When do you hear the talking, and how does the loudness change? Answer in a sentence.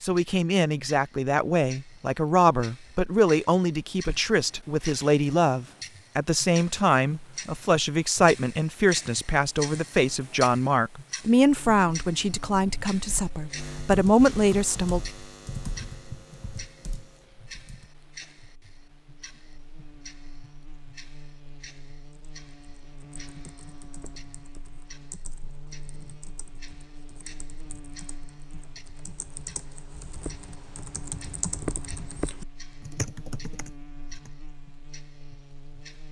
You can hear the talking from 0.0 to 15.0 s, at a steady volume.